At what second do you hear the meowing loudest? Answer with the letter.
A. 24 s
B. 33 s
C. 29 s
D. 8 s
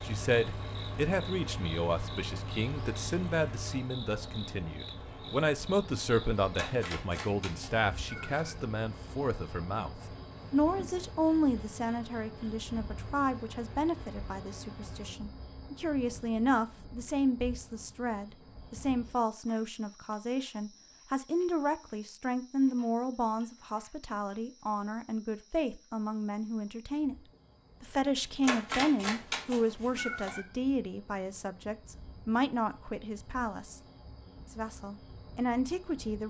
C.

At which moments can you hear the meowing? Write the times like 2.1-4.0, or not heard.
6.5-8.6, 28.4-30.4.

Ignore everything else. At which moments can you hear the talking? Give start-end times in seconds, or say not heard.
0.0-27.1, 27.8-33.8, 34.5-36.2.